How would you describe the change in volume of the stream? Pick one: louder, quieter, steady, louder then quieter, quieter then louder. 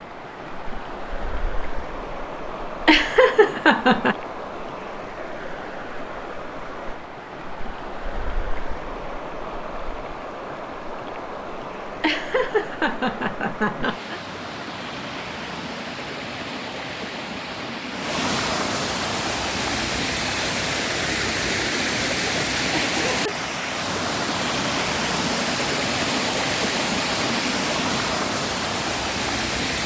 louder.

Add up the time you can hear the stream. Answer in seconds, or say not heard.
30 s.